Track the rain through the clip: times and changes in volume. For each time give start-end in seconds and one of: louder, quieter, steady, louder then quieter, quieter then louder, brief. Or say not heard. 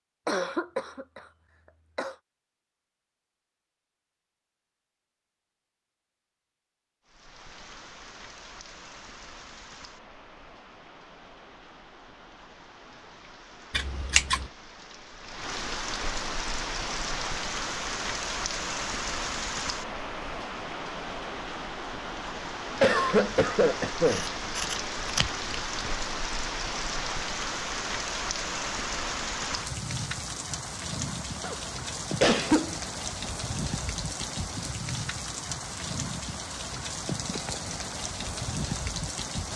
7.0-39.5 louder.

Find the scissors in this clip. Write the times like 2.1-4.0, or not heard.
13.7-14.5, 24.1-25.9.